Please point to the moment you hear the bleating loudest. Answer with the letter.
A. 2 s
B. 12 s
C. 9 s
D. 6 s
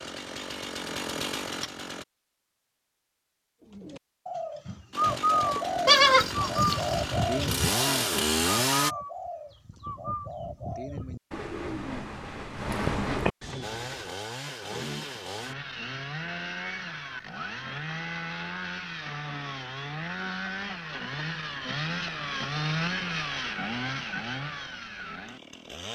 D.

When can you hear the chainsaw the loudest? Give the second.
8 s.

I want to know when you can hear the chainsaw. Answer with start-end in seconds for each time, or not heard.
0.0-2.0, 4.9-8.9, 13.6-25.8.